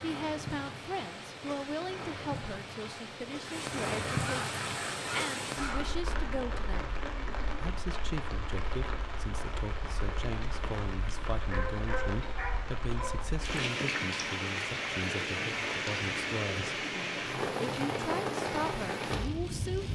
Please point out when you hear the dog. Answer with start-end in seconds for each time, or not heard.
4.0-5.9, 11.4-13.2.